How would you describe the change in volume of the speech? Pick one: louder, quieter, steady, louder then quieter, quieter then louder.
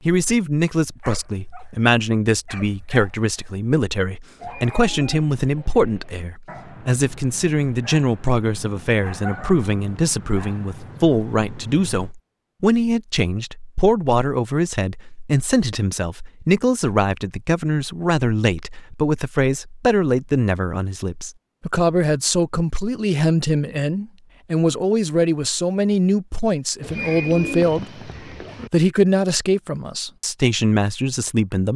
steady.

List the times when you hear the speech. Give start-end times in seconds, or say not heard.
0.1-28.1, 28.7-31.7.